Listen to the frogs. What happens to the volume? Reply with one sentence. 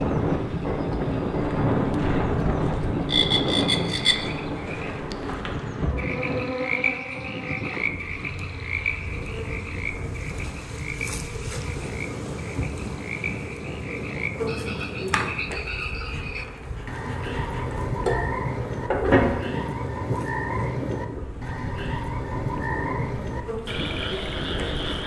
The volume of the frogs goes down, then up.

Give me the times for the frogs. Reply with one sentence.
The frogs can be heard from 0.0 to 25.0 s.